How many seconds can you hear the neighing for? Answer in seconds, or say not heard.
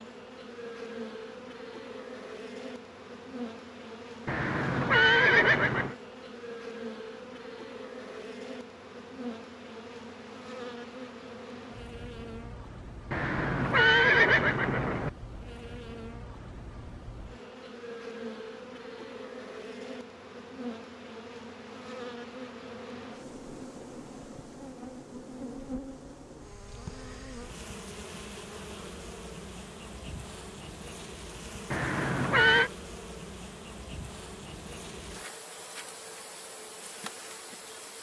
5 s.